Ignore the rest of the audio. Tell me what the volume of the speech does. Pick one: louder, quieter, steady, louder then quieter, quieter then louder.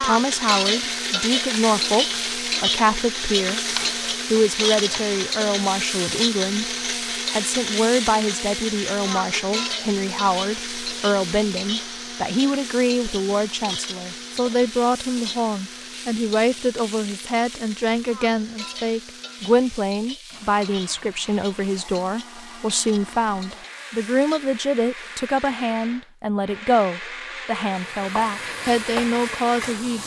steady.